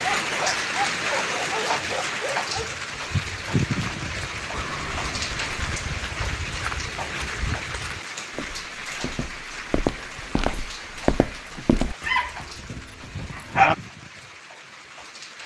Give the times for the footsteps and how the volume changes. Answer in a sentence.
You can hear the footsteps from 2.9 to 11.9 s, getting louder.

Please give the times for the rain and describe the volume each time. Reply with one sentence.
The rain can be heard from 0.0 to 15.4 s, getting quieter.